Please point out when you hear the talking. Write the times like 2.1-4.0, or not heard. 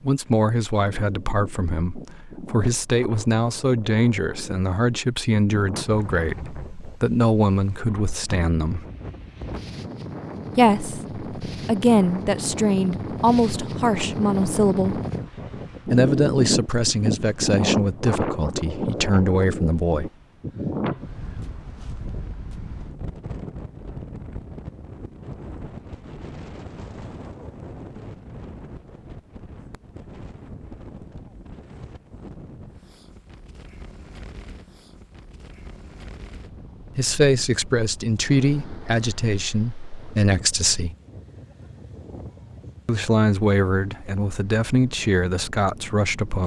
0.0-8.8, 10.6-15.0, 15.8-20.1, 37.0-41.0, 42.9-46.4.